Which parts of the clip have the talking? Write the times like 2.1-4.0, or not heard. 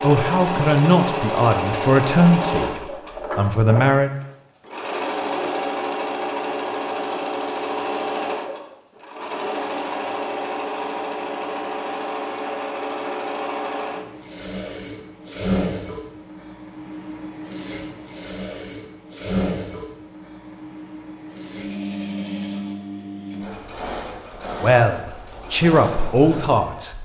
0.0-4.1, 24.6-26.9.